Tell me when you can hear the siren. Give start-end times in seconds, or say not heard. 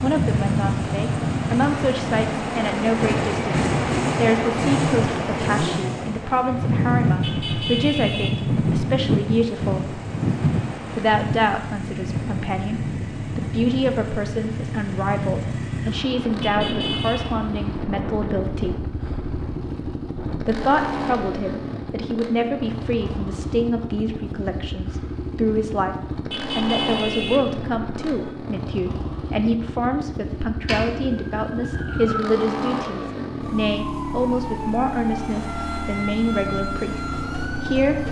30.6-38.0.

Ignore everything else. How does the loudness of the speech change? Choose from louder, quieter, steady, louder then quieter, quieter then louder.
steady.